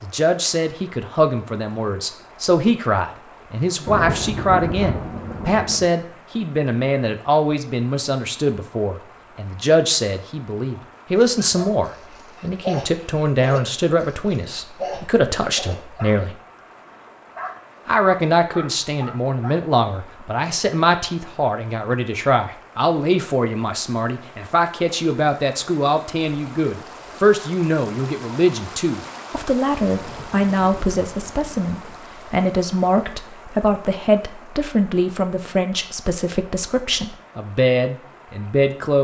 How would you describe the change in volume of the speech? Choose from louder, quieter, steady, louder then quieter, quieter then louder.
steady.